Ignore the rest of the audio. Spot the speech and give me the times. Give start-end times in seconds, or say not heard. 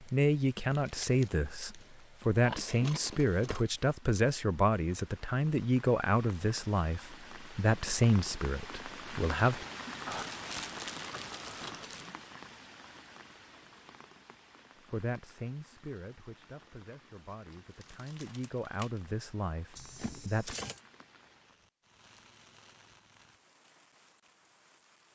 0.0-9.7, 14.9-20.6.